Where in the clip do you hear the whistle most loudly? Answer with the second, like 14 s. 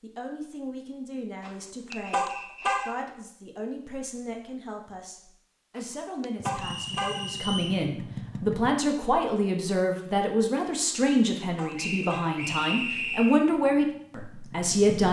13 s.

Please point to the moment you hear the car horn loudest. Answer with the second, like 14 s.
3 s.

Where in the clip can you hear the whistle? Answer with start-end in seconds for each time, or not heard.
1.9-2.9, 6.5-7.8, 11.8-13.4.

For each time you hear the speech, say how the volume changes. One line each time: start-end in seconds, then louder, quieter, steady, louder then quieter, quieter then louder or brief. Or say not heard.
0.0-15.0 louder.